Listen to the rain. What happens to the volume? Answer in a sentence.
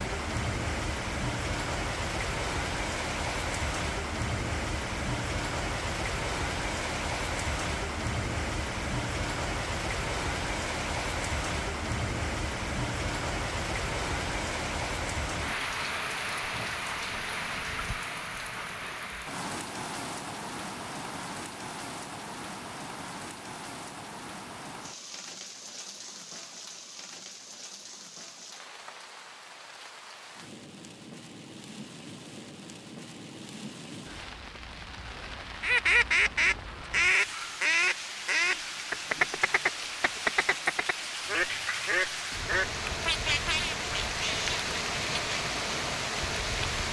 The loudness of the rain goes down, then up.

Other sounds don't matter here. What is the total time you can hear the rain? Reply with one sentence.
You can hear the rain for 47 seconds altogether.